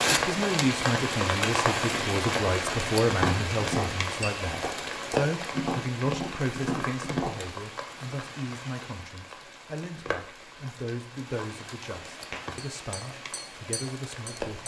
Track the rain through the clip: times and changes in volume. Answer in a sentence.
You can hear the rain from 0.0 to 14.6 s, getting quieter.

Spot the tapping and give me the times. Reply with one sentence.
The tapping can be heard from 3.1 to 7.4 s and from 12.3 to 14.6 s.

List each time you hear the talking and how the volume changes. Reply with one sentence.
You can hear the talking from 0.1 to 14.6 s, getting quieter.